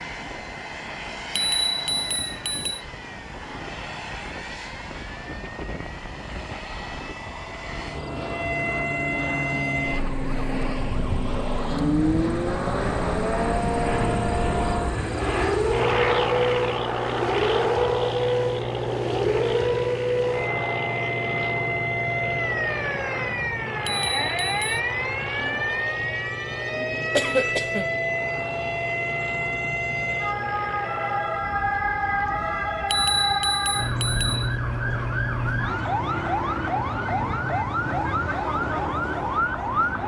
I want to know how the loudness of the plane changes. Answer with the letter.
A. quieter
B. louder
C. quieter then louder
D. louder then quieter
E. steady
D.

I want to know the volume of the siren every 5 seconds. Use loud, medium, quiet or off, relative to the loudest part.
quiet, medium, loud, loud, loud, loud, loud, loud.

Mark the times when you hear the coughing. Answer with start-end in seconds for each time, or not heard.
27.1-27.9.